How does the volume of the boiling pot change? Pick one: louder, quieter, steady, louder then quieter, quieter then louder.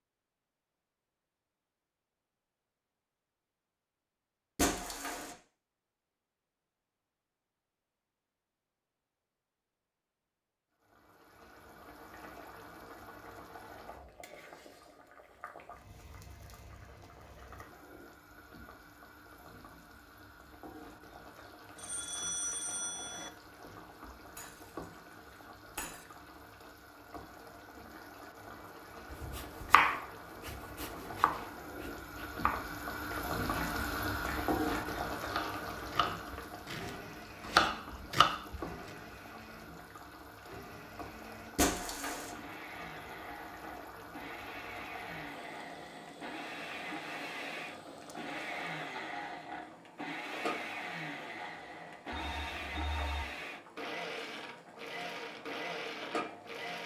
louder then quieter.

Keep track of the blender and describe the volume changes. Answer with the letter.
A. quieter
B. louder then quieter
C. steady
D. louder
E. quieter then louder
D.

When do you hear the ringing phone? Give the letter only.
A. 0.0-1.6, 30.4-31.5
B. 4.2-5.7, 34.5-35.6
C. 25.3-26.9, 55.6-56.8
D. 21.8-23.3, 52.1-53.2
D.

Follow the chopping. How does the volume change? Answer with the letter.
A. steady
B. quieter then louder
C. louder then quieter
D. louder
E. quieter
B.